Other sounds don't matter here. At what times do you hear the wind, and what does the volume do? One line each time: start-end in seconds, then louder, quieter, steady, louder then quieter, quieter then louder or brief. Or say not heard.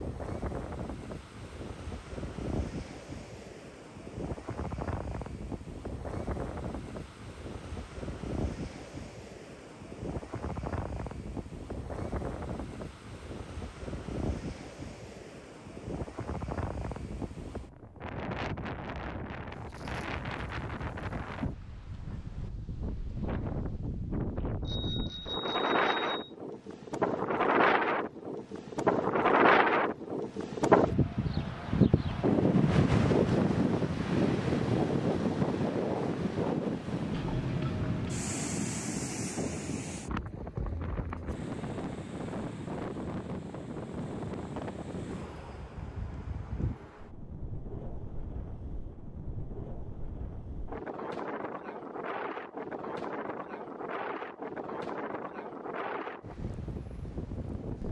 0.0-57.8 louder then quieter.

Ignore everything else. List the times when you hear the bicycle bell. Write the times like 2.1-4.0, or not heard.
24.6-26.3.